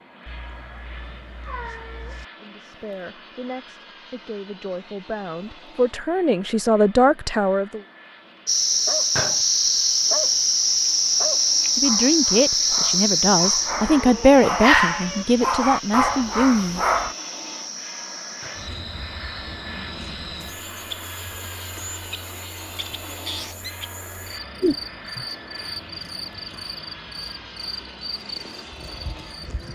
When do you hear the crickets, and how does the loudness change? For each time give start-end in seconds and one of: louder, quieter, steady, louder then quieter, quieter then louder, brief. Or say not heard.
8.4-29.6 quieter.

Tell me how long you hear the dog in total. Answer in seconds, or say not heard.
8 s.